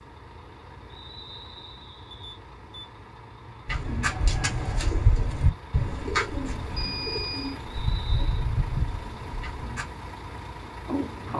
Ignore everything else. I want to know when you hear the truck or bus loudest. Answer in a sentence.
The volume of the truck or bus peaks at 11 seconds.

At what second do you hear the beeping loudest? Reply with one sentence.
The volume of the beeping peaks at 7 seconds.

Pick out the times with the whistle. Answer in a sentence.
You can hear the whistle from 0.8 to 2.1 s and from 7.7 to 8.4 s.